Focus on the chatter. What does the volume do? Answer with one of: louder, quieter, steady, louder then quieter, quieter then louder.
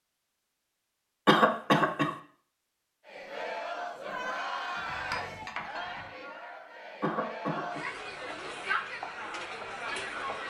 quieter then louder.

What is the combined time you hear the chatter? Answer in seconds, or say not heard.
7 s.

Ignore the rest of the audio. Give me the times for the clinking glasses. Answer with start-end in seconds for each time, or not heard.
4.8-6.1.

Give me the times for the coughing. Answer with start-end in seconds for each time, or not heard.
1.2-2.1, 7.0-7.8.